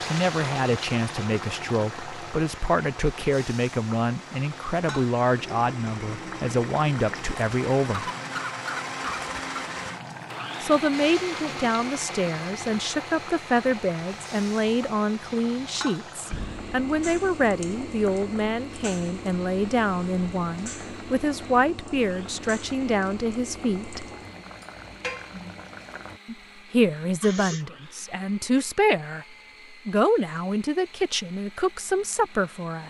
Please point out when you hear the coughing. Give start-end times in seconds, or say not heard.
7.9-9.6, 27.2-27.6.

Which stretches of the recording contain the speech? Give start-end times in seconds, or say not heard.
0.1-8.1, 10.6-24.1, 26.2-29.2, 29.9-32.8.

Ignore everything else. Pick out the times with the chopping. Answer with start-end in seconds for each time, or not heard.
not heard.